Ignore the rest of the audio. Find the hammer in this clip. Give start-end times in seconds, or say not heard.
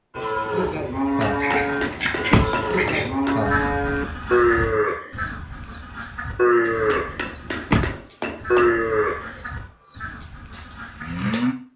1.2-3.4, 6.8-8.8.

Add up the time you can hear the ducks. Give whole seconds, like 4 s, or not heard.
10 s.